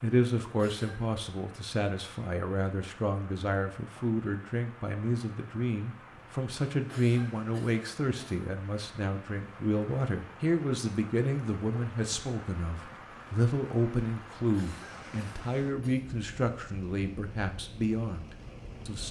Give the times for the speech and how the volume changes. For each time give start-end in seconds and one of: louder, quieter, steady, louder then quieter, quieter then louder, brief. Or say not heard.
0.0-19.0 steady.